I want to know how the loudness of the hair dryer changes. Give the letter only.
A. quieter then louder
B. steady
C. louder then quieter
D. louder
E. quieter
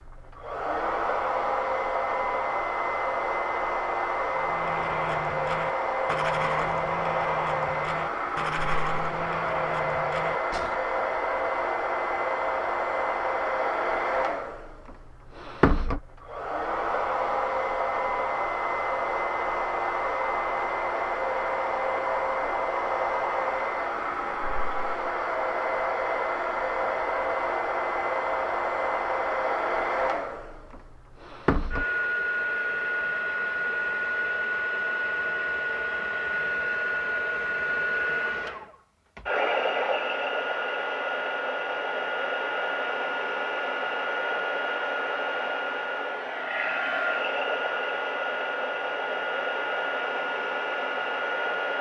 B.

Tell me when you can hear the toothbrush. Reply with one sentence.
You can hear the toothbrush from 4.3 to 10.9 s.